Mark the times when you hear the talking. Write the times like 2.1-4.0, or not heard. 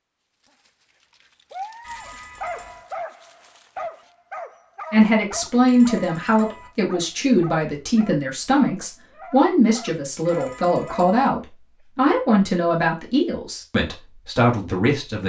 4.9-15.2.